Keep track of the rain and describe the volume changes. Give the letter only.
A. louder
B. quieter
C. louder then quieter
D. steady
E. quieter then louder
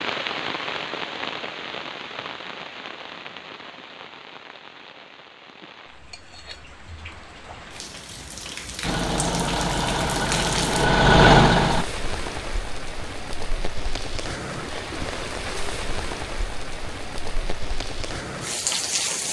E.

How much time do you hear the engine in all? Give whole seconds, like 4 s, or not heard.
3 s.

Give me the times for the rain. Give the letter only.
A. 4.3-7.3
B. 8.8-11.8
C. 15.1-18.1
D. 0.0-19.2
D.